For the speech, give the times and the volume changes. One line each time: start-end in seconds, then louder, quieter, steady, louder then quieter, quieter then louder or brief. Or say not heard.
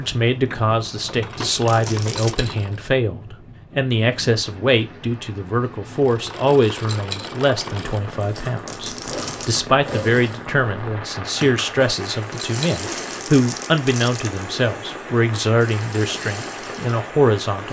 0.0-17.6 steady.